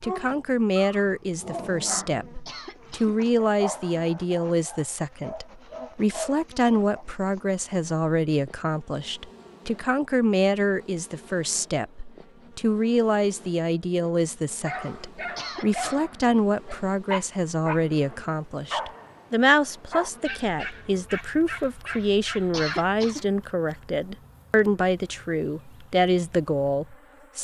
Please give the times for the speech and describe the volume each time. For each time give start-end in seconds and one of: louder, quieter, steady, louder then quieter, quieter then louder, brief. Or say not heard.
0.0-27.3 steady.